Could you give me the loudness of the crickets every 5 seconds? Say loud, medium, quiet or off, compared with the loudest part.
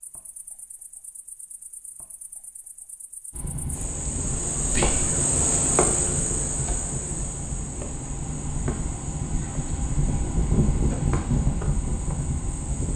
medium, loud, medium.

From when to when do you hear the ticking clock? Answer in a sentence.
You can't hear the ticking clock here.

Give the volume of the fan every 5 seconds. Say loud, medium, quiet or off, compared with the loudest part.
medium, medium, loud.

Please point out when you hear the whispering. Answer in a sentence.
You can hear the whispering from 4.7 to 5.2 s.